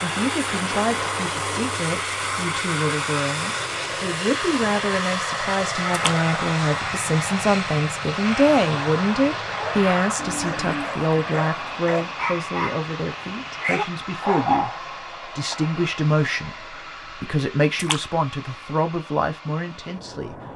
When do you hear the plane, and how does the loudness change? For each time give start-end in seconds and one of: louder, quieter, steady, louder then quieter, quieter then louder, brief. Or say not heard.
0.0-20.5 quieter.